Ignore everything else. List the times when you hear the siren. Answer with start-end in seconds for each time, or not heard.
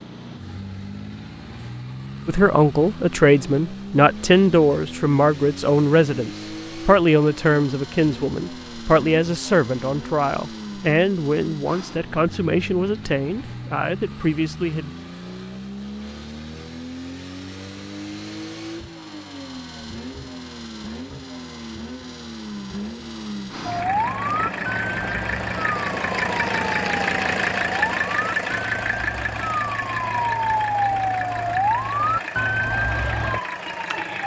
23.6-34.2.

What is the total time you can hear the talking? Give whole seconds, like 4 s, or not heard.
13 s.